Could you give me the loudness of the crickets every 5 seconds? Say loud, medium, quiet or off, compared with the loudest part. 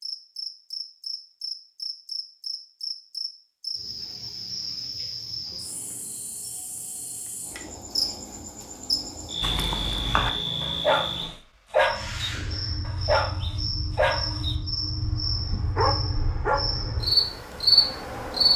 medium, medium, medium, loud.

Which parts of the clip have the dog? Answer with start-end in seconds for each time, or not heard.
9.4-16.6.